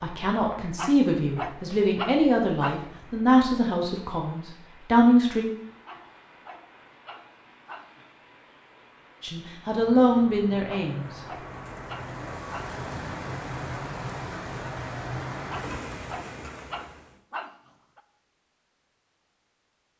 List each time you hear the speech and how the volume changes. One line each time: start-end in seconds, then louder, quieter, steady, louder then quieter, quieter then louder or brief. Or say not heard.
0.0-5.5 steady
9.2-11.1 brief.